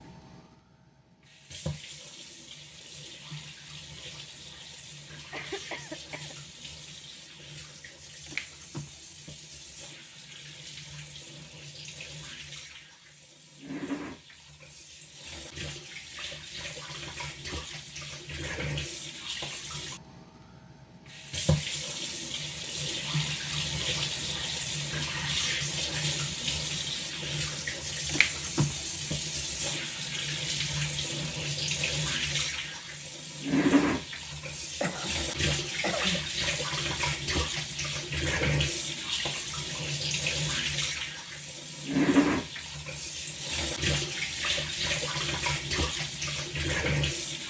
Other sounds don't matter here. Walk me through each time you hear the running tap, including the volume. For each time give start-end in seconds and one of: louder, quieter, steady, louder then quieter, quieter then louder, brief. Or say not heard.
0.0-47.4 louder.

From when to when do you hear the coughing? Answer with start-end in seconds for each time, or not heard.
5.3-6.3, 34.8-36.2.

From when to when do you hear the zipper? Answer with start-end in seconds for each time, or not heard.
not heard.